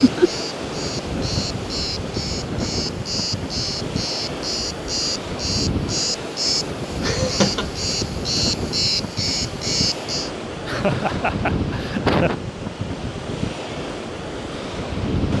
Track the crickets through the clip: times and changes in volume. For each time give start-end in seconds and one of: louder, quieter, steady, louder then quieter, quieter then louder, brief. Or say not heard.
0.0-10.3 louder.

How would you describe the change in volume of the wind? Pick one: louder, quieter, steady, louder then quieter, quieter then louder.
steady.